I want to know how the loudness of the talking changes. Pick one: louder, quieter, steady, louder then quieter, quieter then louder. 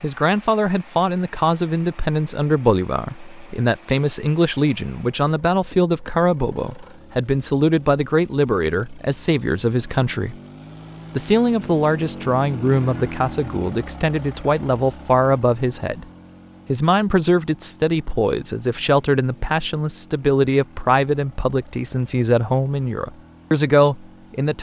steady.